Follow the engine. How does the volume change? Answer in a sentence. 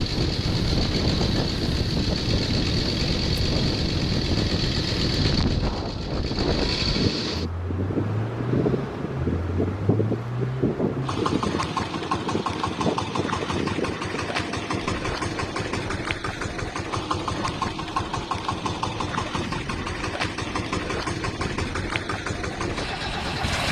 The volume of the engine stays about the same.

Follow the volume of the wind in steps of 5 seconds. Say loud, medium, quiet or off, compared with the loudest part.
loud, loud, loud, medium, medium.